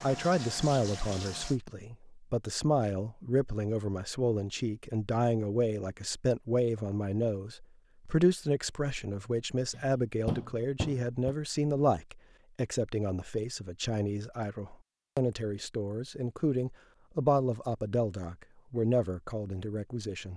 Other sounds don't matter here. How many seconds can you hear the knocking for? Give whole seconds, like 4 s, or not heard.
2 s.